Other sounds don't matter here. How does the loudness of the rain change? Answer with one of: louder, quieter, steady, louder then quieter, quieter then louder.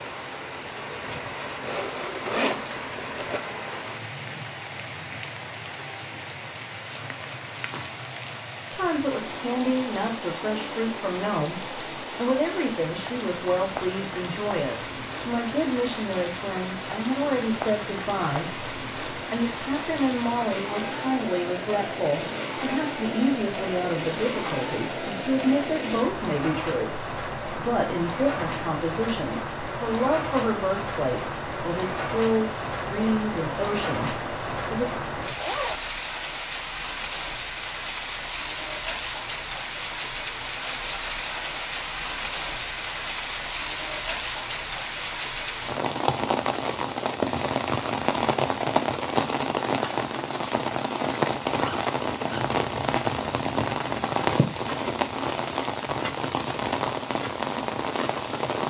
louder.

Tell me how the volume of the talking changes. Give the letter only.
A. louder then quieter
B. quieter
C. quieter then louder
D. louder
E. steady
E.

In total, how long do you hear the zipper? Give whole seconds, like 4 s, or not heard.
3 s.